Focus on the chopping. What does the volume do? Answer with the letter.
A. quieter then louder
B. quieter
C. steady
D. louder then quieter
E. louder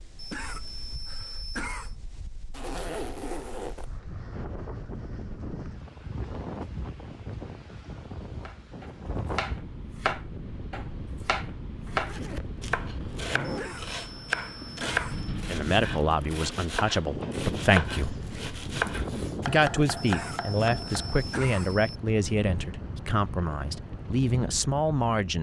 C.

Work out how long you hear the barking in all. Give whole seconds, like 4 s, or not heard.
not heard.